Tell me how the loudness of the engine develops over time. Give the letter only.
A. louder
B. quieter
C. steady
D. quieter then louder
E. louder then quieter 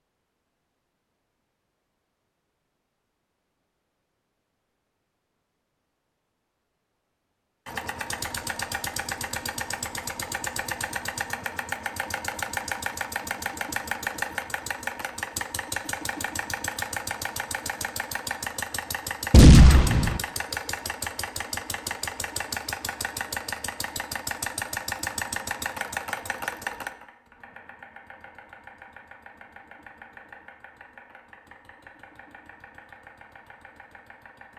B.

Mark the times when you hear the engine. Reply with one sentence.
The engine can be heard from 7.7 to 34.5 s.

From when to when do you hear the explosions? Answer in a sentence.
You can hear the explosions from 19.3 to 20.2 s.